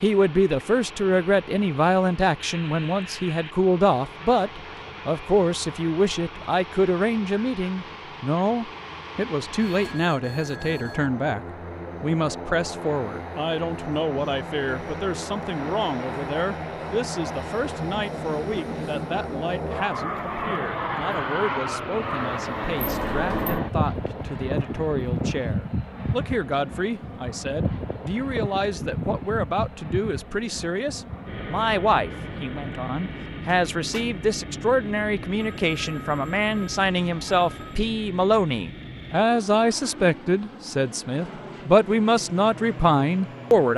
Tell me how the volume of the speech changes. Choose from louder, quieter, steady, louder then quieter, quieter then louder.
quieter then louder.